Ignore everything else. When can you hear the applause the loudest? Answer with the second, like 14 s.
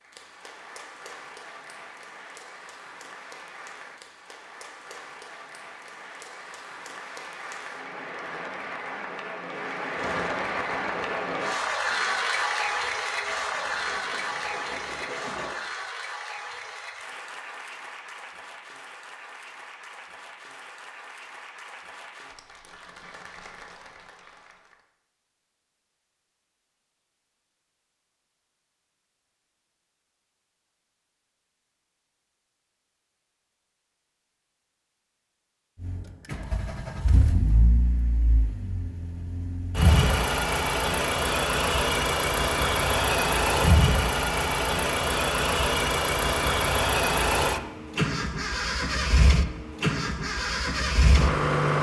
12 s.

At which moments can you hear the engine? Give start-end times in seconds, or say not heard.
9.9-15.6, 35.8-51.7.